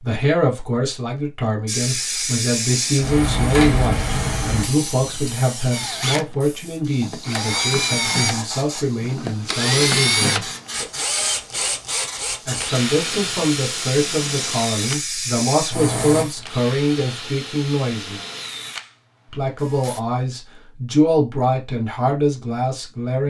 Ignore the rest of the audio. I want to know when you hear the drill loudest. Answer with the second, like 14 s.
10 s.